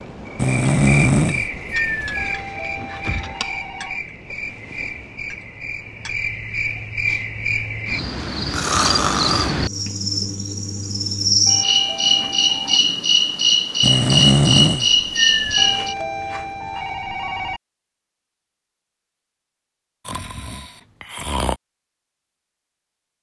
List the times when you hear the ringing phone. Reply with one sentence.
You can hear the ringing phone from 2.1 to 4.0 s, from 11.4 to 12.8 s and from 15.6 to 17.6 s.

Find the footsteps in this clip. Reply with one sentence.
You can't hear the footsteps here.